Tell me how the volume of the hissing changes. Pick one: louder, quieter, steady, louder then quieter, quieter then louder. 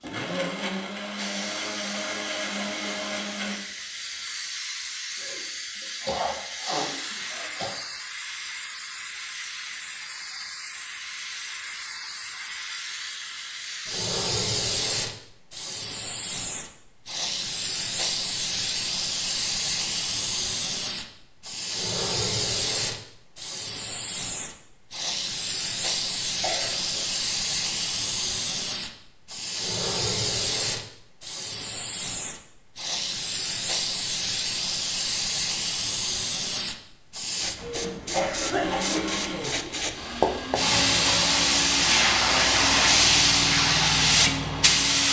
louder.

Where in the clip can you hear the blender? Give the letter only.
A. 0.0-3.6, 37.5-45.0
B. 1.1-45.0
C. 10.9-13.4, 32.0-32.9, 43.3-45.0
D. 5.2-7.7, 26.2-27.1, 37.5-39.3
A.